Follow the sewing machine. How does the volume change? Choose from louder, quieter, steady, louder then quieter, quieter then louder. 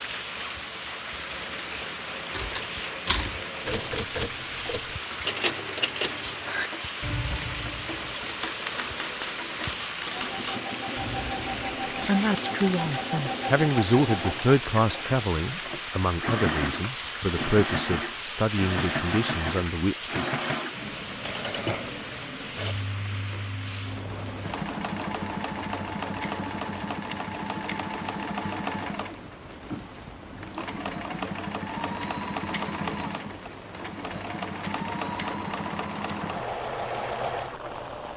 louder.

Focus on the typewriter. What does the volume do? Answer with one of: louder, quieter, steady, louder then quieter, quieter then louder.
quieter.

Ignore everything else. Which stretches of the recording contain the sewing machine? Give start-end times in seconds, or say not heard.
0.0-38.1.